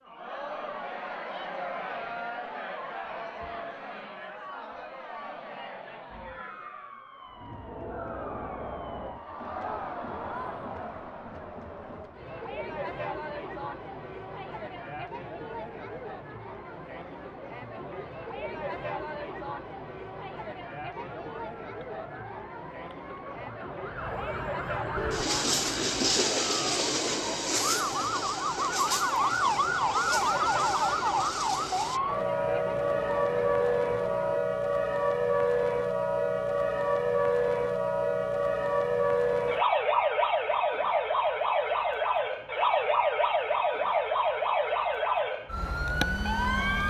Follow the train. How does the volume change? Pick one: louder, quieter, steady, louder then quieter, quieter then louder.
quieter.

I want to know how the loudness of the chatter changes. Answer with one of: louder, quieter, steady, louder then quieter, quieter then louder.
steady.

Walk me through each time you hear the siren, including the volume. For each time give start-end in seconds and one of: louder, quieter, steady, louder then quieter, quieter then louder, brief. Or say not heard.
6.1-11.1 steady
20.9-46.8 louder.